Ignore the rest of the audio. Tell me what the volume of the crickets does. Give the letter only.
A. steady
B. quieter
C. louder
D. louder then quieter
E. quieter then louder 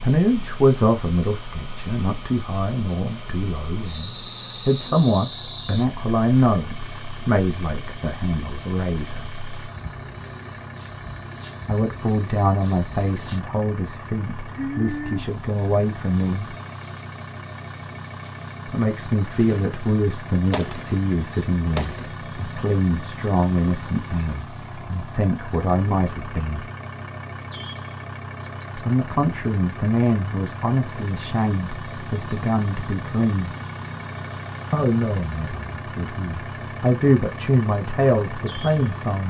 A.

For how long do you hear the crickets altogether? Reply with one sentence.
The crickets can be heard for 39 seconds in total.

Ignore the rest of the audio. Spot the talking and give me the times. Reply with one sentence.
You can hear the talking from 0.0 to 9.4 s, from 11.7 to 16.6 s, from 18.6 to 26.6 s, from 28.8 to 33.5 s and from 34.7 to 39.2 s.